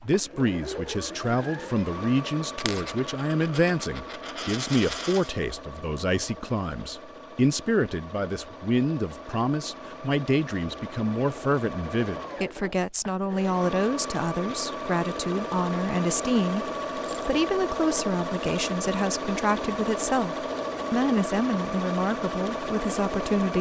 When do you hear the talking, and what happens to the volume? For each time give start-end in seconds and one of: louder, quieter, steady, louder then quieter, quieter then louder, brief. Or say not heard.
0.0-23.5 steady.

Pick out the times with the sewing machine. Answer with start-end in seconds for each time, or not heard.
0.0-23.5.